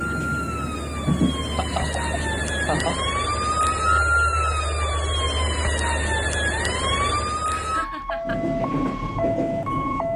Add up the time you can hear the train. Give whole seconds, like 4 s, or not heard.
5 s.